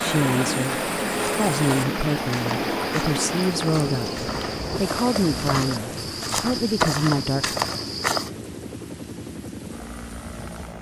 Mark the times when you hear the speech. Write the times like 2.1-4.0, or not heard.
0.0-7.6.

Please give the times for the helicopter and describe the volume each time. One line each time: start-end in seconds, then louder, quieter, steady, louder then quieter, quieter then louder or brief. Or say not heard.
0.0-10.7 quieter.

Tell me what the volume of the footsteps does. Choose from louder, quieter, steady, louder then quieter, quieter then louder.
louder.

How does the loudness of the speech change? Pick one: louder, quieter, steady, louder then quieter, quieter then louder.
steady.